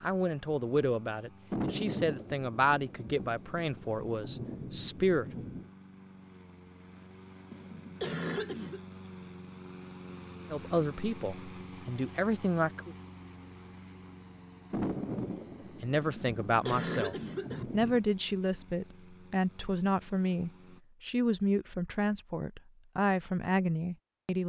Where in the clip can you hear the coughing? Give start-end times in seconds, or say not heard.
7.5-8.8, 16.1-17.6.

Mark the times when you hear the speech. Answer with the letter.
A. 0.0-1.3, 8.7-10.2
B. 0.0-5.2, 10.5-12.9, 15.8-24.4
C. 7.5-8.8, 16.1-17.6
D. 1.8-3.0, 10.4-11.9
B.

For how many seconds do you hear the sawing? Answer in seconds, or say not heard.
not heard.